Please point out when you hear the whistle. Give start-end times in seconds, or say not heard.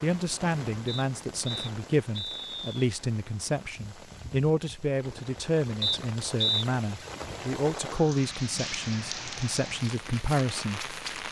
0.8-2.8, 5.8-6.7.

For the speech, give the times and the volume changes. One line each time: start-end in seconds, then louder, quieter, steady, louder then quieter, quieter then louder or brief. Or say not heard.
0.0-11.2 steady.